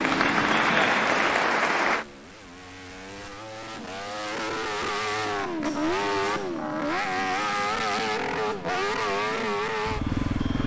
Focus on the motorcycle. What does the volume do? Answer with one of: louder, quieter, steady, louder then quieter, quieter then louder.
louder.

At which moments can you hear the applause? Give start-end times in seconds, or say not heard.
0.0-2.0.